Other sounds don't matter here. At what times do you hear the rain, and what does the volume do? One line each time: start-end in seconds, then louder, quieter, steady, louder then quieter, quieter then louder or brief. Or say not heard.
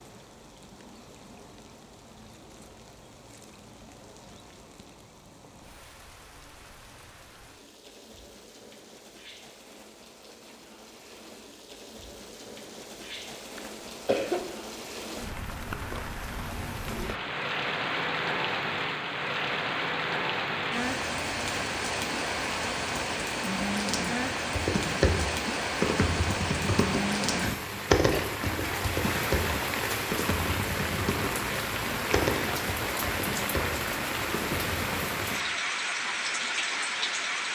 0.0-37.5 louder.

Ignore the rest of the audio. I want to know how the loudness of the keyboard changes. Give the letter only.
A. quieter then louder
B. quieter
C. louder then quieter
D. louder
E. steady
B.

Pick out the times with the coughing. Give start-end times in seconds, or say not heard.
13.6-14.6.